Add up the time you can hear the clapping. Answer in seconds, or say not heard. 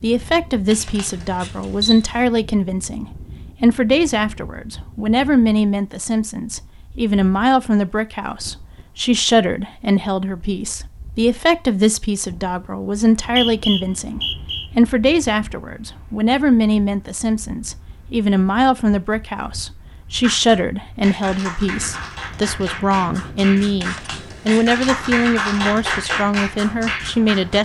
7 s.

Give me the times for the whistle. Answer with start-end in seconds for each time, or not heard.
12.9-14.7.